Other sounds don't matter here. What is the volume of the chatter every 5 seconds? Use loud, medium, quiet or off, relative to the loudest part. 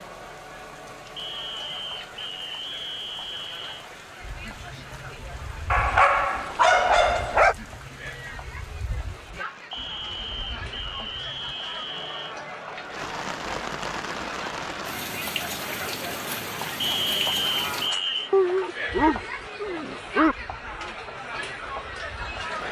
medium, medium, medium, loud, loud.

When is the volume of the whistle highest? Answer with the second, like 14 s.
17 s.